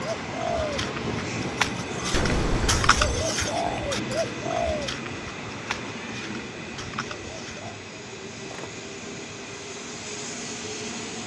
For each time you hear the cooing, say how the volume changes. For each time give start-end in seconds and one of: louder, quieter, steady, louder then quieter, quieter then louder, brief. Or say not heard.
0.0-7.8 quieter.